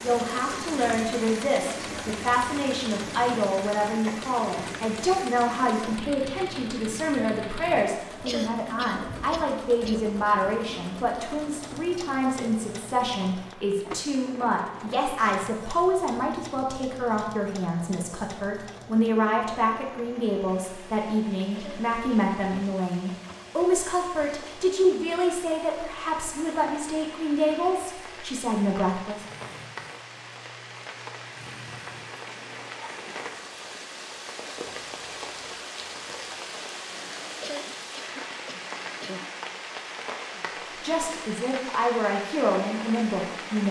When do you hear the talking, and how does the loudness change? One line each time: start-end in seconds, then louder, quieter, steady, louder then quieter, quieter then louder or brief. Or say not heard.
0.0-29.2 steady
40.8-43.6 brief.